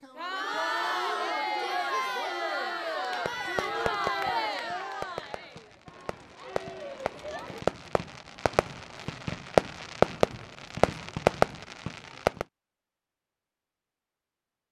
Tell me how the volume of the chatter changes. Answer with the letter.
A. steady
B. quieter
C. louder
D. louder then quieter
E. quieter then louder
B.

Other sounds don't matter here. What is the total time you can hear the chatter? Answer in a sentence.
The chatter can be heard for 8 seconds in total.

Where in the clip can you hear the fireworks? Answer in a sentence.
The fireworks can be heard from 3.2 to 12.4 s.